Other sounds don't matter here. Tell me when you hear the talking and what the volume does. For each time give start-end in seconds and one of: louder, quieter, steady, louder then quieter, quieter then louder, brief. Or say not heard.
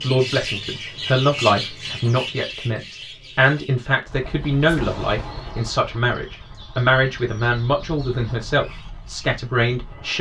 0.0-10.1 steady.